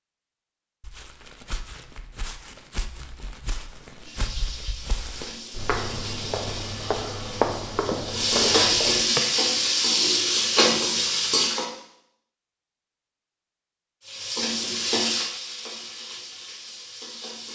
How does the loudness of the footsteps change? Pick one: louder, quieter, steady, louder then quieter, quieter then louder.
louder.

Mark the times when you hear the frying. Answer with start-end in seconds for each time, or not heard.
4.0-11.7, 14.1-17.5.